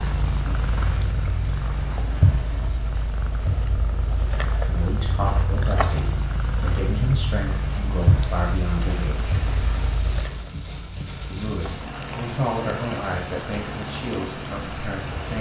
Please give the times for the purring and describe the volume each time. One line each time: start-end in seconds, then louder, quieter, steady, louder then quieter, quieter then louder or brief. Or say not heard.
0.0-15.3 quieter.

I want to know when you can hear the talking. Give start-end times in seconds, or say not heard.
4.7-9.3, 11.3-15.3.